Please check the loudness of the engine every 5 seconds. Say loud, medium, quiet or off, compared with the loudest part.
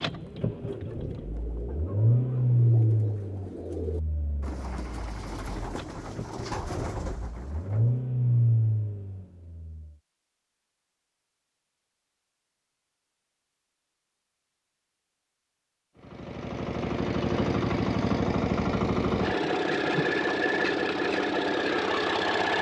loud, loud, off, loud, loud.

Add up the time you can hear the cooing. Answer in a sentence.
You can hear the cooing for 8 seconds altogether.